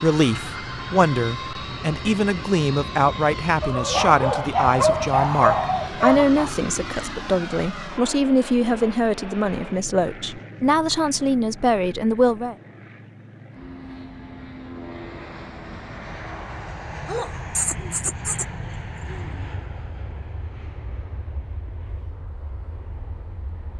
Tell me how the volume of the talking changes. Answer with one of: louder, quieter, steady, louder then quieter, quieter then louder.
steady.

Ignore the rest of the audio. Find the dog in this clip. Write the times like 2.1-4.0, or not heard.
3.6-6.5, 17.1-19.4.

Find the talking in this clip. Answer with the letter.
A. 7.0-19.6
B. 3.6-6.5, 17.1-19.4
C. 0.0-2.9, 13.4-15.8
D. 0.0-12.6
D.